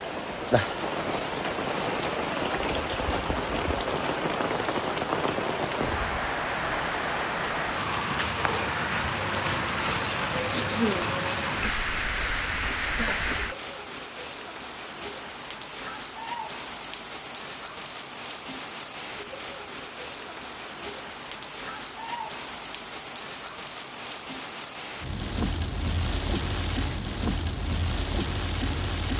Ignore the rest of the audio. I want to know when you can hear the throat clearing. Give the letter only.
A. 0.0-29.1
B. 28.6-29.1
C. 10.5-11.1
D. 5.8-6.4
C.